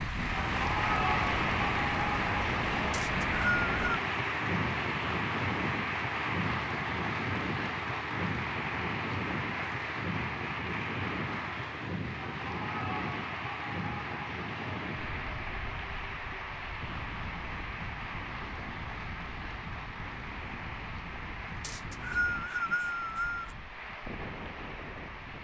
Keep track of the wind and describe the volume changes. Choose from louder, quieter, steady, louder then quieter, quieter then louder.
quieter.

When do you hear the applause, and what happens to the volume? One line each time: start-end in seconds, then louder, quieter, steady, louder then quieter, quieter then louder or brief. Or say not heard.
0.0-25.3 quieter.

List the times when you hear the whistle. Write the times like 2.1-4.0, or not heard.
2.9-3.8, 21.6-23.6.